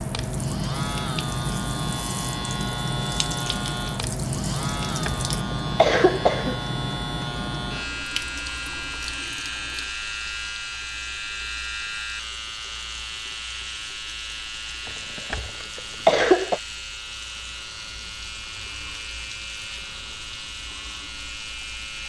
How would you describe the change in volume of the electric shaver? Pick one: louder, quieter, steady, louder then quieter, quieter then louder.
quieter.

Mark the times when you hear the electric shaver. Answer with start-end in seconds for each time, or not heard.
0.0-22.0.